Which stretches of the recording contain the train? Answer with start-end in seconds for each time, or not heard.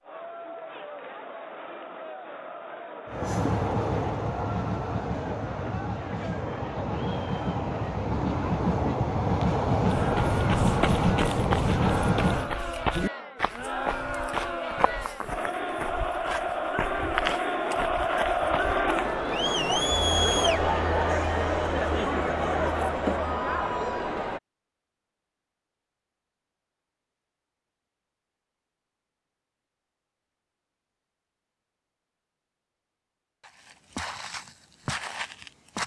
3.0-12.6.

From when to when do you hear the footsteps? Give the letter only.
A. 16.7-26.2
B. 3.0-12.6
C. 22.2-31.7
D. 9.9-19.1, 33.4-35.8
D.